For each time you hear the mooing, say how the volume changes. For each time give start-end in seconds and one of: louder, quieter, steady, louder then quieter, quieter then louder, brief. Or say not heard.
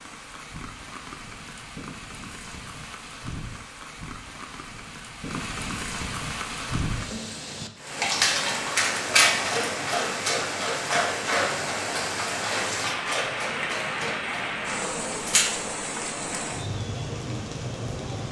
not heard.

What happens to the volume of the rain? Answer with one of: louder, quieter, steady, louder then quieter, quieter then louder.
louder.